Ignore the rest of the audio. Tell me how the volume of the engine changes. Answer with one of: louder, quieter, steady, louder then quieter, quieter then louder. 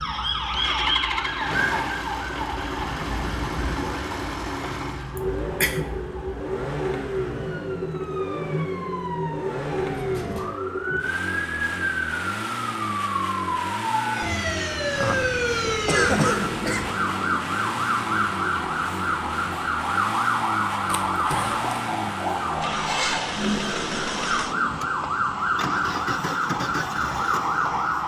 steady.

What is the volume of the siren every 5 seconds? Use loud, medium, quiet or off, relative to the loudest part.
loud, medium, loud, loud, loud, loud.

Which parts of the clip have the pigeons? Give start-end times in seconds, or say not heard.
not heard.